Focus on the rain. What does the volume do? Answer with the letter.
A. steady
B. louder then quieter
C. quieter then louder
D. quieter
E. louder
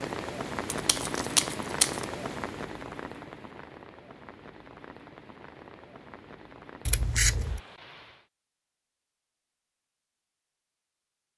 D.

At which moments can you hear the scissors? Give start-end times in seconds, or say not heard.
0.7-2.1, 6.8-7.6.